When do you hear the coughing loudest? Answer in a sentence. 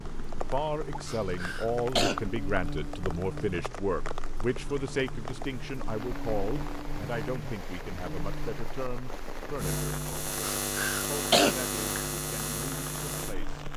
The loudest moment of the coughing is at 11 seconds.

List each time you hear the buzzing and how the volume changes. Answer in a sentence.
You can hear the buzzing from 0.0 to 13.7 s, getting louder.